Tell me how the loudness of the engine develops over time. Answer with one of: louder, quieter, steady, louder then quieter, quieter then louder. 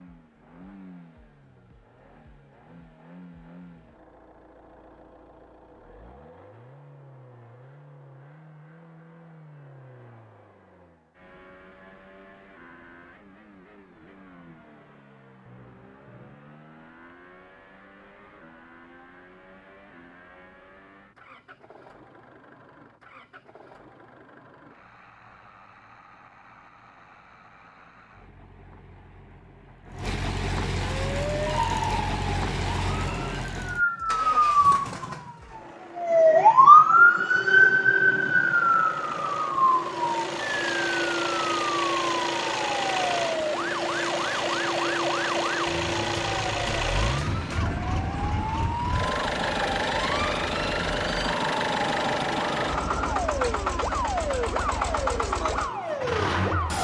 louder.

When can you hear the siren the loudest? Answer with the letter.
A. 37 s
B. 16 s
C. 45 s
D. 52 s
A.